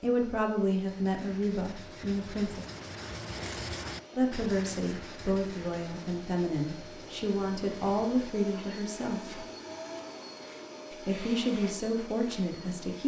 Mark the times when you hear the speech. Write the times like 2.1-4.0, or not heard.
0.0-2.6, 4.2-9.4, 11.1-13.0.